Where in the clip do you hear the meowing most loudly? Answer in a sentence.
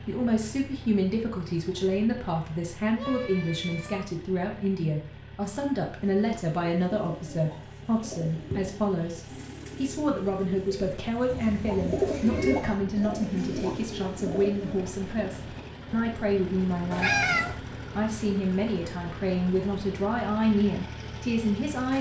The loudest moment of the meowing is at 17 seconds.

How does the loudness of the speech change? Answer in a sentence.
The volume of the speech stays about the same.